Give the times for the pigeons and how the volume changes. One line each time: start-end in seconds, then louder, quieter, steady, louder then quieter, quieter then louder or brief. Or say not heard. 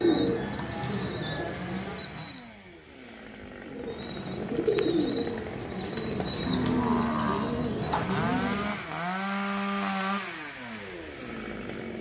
0.0-2.5 brief
3.6-8.9 steady.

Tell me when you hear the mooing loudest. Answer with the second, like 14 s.
7 s.